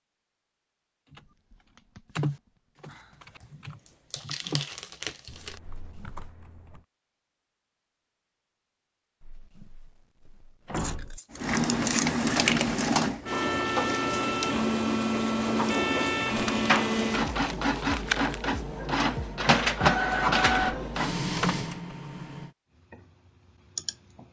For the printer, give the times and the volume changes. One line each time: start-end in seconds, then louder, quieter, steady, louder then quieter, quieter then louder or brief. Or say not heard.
11.3-22.6 steady.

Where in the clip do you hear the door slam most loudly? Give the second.
11 s.